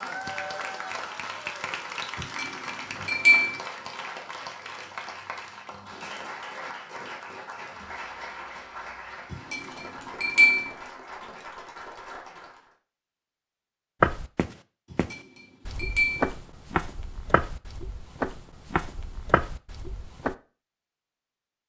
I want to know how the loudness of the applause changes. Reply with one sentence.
The volume of the applause goes down.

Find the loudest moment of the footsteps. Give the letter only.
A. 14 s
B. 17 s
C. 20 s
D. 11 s
A.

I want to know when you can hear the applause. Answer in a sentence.
You can hear the applause from 0.0 to 12.8 s.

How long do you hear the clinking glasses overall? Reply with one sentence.
You can hear the clinking glasses for 4 seconds altogether.